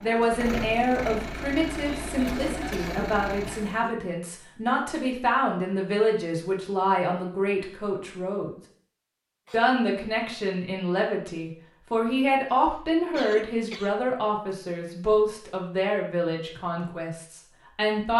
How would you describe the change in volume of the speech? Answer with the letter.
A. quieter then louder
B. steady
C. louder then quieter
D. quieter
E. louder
B.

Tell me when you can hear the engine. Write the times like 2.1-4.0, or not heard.
0.0-3.9.